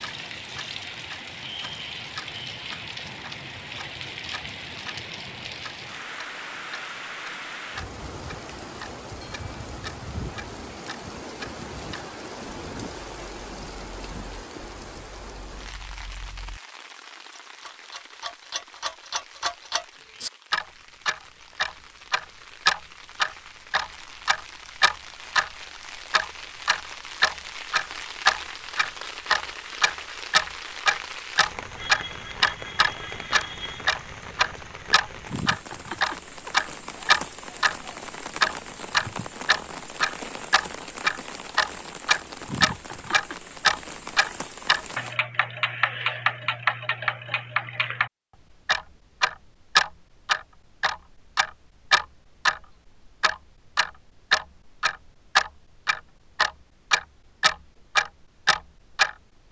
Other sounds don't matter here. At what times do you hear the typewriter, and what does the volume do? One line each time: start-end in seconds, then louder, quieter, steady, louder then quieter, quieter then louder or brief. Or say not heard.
not heard.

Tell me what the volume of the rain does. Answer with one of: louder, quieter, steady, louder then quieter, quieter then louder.
quieter then louder.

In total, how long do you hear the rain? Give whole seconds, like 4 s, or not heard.
45 s.